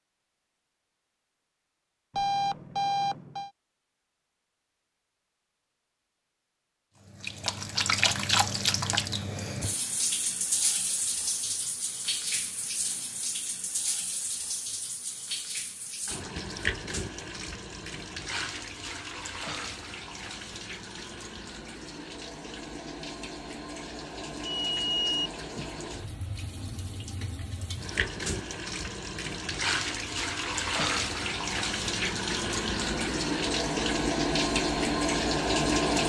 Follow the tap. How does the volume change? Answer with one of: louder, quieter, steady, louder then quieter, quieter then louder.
quieter then louder.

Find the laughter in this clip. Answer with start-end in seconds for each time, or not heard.
not heard.